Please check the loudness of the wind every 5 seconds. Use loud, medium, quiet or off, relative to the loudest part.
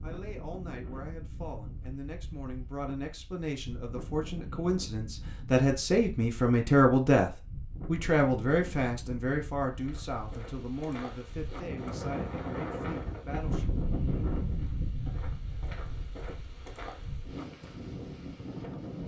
medium, medium, loud, medium.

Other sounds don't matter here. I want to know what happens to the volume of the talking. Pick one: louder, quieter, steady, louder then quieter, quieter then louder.
louder then quieter.